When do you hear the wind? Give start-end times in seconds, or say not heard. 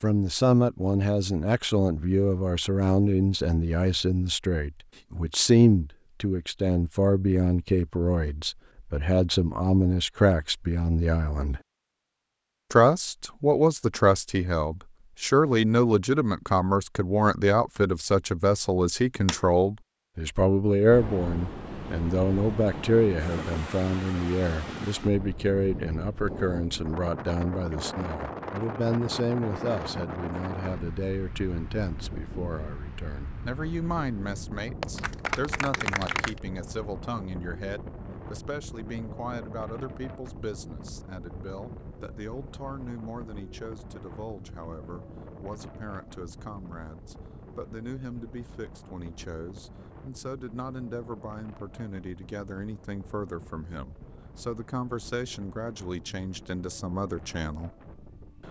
20.9-58.4.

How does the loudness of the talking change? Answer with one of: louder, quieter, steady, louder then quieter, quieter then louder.
quieter.